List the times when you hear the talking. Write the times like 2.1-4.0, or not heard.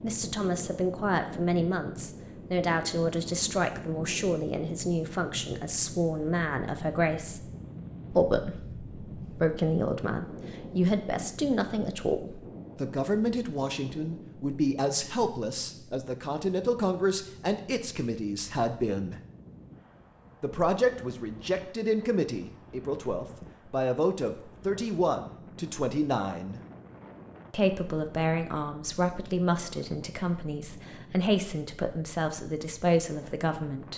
0.0-7.5, 8.1-19.2, 20.4-26.6, 27.5-33.9.